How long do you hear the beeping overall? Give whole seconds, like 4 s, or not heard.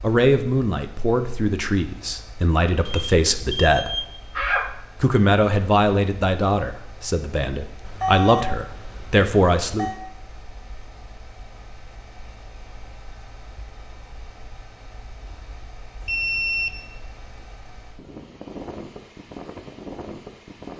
5 s.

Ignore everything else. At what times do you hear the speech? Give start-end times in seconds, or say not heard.
0.0-4.2, 5.0-9.9.